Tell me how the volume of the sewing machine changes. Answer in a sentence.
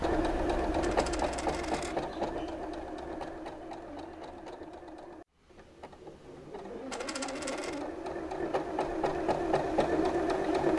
The volume of the sewing machine goes down, then up.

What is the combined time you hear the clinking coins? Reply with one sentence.
You can hear the clinking coins for 2 seconds altogether.